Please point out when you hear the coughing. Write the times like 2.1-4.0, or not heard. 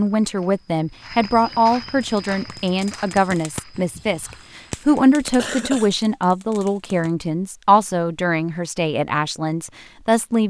5.2-5.9.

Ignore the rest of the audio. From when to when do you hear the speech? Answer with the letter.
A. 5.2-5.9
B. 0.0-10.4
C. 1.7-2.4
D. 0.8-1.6
B.